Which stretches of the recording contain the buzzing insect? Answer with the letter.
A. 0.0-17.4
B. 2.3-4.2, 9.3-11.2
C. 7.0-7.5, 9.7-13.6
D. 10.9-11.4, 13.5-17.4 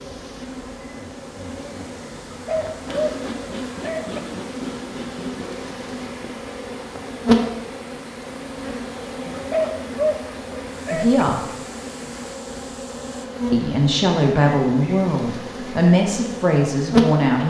A.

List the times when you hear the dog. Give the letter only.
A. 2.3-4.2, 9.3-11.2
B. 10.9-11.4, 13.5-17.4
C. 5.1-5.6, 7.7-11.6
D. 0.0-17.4
A.